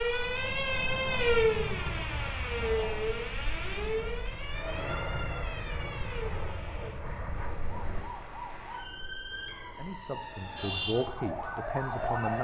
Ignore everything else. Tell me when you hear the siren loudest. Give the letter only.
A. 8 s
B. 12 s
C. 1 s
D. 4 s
C.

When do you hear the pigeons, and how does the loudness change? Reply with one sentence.
The pigeons can't be heard in this clip.